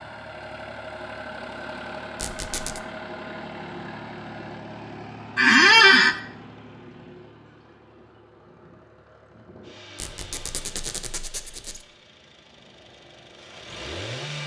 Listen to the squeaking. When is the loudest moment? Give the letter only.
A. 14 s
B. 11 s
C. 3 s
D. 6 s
D.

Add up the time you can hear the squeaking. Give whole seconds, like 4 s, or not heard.
3 s.